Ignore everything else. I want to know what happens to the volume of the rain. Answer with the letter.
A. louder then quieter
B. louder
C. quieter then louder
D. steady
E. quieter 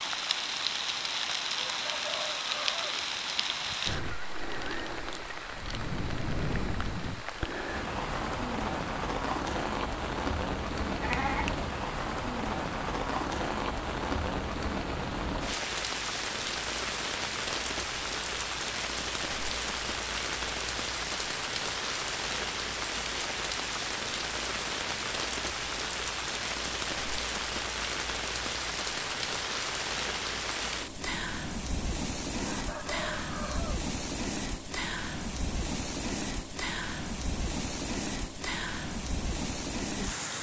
D.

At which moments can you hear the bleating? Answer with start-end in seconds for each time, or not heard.
11.0-11.7.